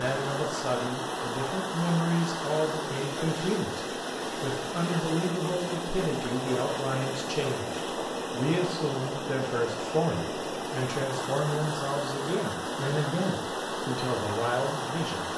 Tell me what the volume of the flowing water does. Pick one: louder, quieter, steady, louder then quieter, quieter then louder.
steady.